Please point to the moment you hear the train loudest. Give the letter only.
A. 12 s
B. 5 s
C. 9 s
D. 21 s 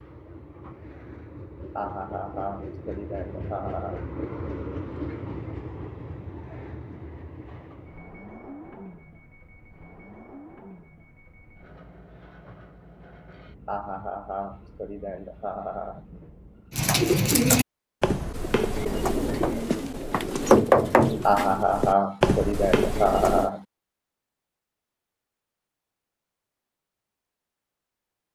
B.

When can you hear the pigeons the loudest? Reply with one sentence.
The loudest moment of the pigeons is at 21 seconds.